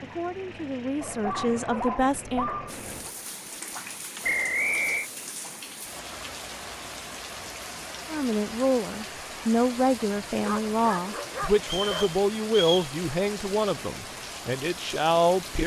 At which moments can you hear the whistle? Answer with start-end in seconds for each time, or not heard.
4.2-5.1, 11.6-12.9.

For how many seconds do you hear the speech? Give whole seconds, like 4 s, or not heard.
10 s.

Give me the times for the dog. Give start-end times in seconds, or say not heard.
1.0-3.1, 10.4-12.2.